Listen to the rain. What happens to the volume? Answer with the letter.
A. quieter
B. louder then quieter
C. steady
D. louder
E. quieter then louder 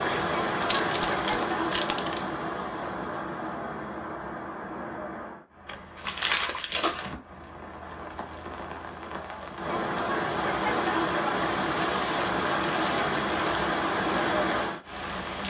E.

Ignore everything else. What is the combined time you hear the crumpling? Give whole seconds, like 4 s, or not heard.
5 s.